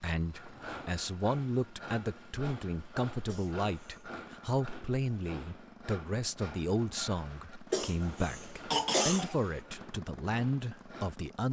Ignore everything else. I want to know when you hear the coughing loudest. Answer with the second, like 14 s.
9 s.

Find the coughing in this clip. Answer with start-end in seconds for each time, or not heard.
3.2-4.0, 7.7-9.3.